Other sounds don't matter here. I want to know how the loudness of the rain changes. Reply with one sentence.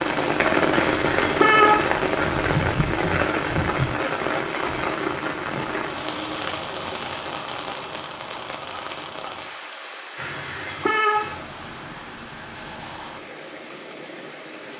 The loudness of the rain goes down.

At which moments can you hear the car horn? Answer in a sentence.
You can hear the car horn from 0.7 to 1.9 s and from 10.2 to 11.3 s.